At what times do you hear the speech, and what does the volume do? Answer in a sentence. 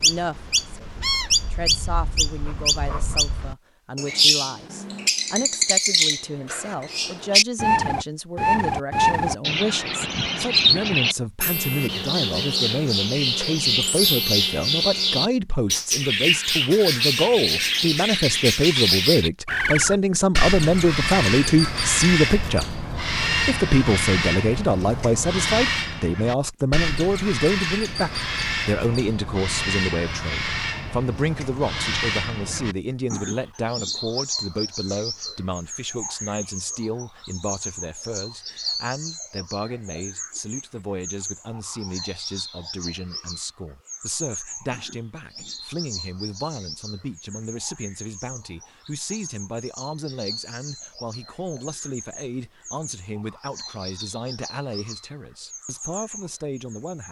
You can hear the speech from 0.0 to 22.6 s, getting louder; and from 23.4 to 57.0 s, getting quieter.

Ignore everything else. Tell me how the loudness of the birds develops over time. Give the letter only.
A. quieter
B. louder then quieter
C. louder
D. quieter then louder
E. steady
A.